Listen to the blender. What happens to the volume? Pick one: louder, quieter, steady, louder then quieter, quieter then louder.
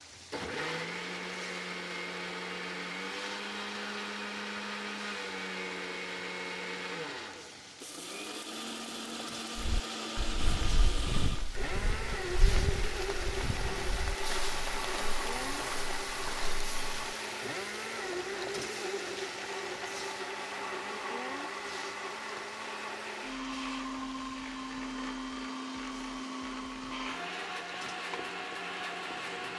steady.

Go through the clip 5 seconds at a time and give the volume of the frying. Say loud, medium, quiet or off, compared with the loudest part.
medium, medium, loud, loud, medium, medium.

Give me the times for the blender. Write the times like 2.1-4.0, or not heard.
0.1-29.5.